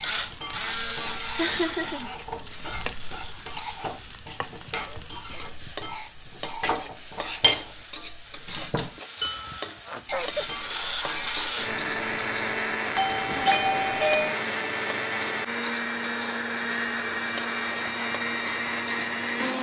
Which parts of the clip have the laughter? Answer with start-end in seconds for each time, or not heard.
1.4-2.1, 9.8-10.6, 13.2-14.4.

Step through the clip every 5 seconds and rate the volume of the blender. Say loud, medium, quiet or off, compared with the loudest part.
medium, quiet, loud, loud.